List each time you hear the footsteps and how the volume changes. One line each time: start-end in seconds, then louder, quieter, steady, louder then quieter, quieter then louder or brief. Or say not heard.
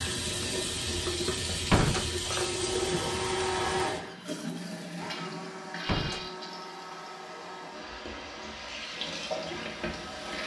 not heard.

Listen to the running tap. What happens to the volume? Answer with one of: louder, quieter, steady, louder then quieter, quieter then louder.
quieter then louder.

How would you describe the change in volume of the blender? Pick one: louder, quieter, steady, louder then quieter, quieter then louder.
quieter.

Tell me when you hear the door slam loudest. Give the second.
2 s.